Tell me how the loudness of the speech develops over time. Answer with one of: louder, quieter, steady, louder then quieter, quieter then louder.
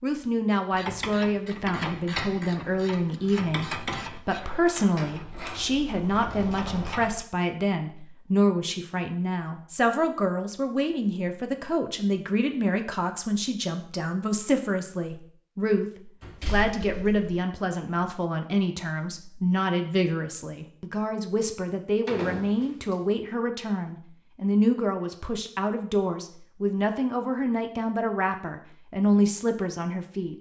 steady.